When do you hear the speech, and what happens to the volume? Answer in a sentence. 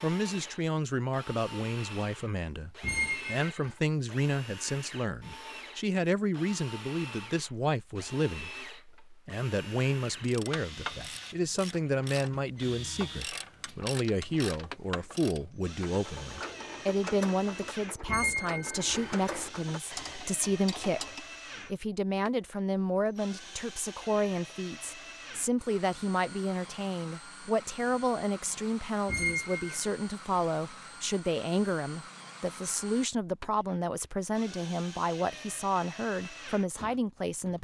You can hear the speech from 0.0 to 37.5 s, at a steady volume.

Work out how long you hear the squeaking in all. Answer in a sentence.
You can hear the squeaking for 3 seconds altogether.